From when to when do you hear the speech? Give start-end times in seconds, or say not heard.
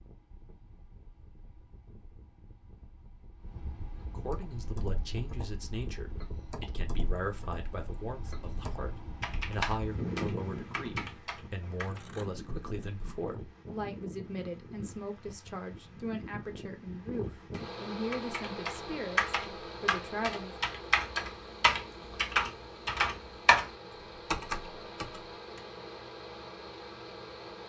4.0-20.6.